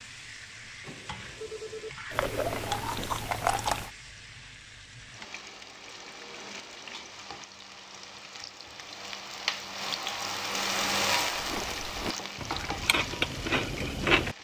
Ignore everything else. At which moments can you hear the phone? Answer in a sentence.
You can hear the phone from 0.8 to 1.9 s.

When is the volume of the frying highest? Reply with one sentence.
The loudest moment of the frying is at 11 seconds.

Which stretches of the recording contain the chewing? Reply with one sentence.
You can hear the chewing from 2.1 to 3.9 s and from 11.3 to 14.3 s.